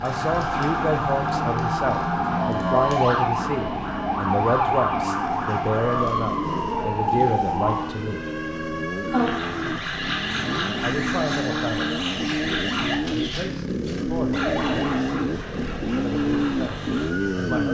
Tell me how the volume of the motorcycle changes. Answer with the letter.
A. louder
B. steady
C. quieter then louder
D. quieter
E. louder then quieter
A.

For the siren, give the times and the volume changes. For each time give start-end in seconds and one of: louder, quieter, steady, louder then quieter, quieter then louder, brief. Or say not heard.
0.0-17.7 quieter.